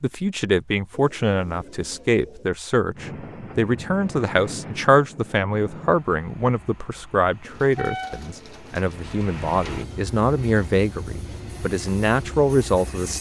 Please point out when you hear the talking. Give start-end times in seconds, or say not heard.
0.0-13.1.